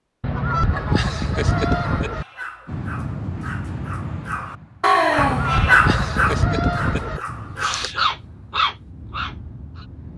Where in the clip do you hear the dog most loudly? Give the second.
6 s.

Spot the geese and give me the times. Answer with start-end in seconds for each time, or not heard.
0.2-2.2, 5.2-7.2.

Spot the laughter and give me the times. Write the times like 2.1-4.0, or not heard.
0.9-2.2, 5.8-8.0.